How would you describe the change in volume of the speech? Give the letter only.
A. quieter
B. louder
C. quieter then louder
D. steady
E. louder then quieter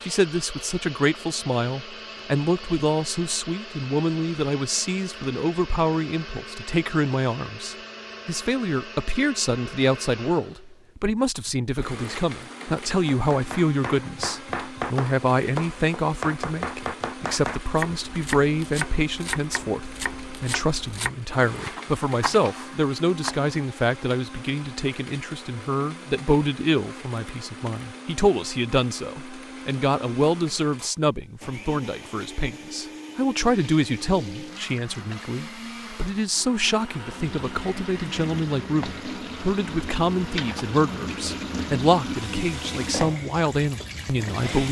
D.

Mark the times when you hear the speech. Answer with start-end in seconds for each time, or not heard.
0.0-44.6.